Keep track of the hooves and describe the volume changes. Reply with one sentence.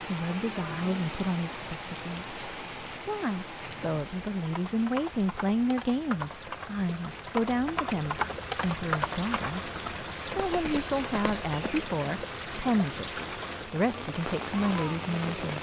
The volume of the hooves goes up, then down.